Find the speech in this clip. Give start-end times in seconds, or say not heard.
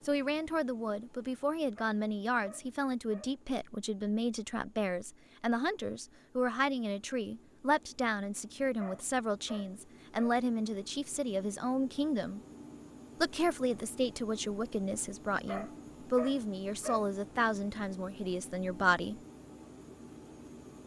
0.1-12.4, 13.2-19.2.